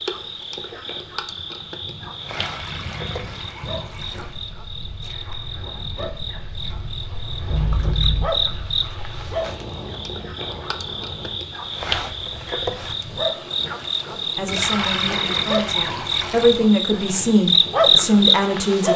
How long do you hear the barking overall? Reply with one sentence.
The barking can't be heard in this clip.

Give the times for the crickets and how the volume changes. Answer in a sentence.
You can hear the crickets from 0.0 to 18.9 s, getting louder.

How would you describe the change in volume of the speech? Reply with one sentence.
The loudness of the speech goes up.